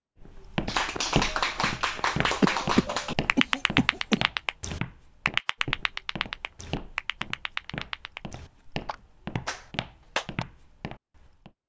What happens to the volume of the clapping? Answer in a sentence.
The loudness of the clapping goes down.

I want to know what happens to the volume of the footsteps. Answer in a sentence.
The volume of the footsteps goes down.